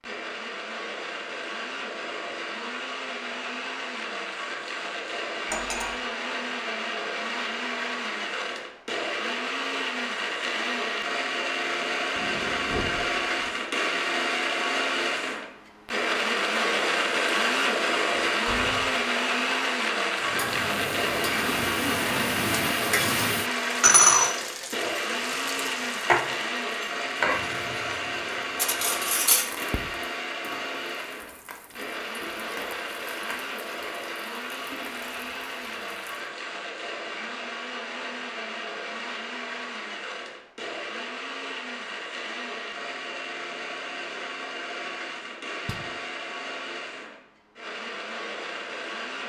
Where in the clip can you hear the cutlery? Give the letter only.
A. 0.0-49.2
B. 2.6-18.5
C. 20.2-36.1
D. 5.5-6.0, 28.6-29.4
D.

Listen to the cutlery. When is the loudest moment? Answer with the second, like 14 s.
29 s.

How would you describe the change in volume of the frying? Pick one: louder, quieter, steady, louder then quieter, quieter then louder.
louder then quieter.